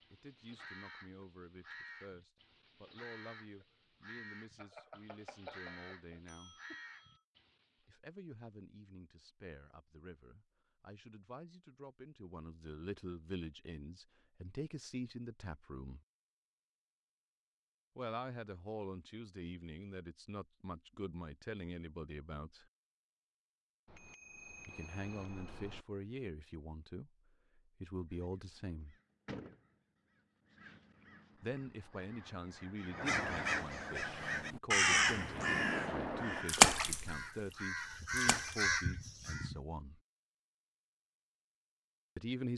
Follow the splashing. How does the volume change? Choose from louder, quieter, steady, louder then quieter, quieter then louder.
louder then quieter.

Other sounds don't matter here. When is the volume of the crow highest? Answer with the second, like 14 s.
35 s.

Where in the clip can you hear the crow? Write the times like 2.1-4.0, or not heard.
0.0-7.7, 28.1-39.6.